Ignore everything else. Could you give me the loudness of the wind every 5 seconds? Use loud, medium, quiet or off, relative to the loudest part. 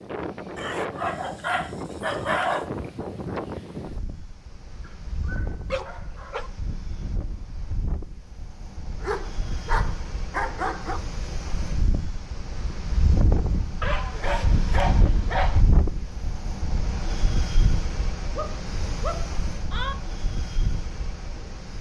loud, medium, loud, loud, medium.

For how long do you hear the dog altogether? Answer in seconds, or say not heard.
9 s.